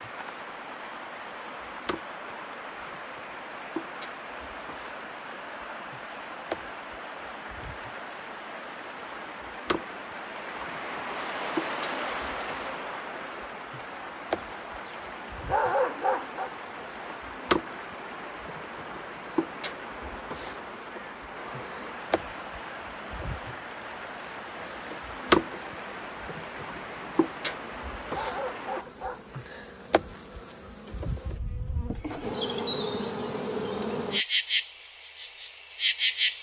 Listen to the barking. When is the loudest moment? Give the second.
16 s.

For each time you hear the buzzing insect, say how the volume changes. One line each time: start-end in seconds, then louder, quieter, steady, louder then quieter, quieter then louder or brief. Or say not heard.
0.0-36.3 louder.